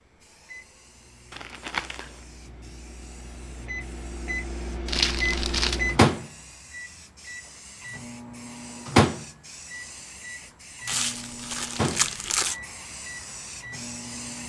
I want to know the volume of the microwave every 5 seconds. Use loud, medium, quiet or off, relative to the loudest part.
quiet, loud, medium.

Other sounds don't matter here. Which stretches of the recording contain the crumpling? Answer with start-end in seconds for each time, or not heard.
1.3-2.2, 4.8-5.8, 10.8-12.6.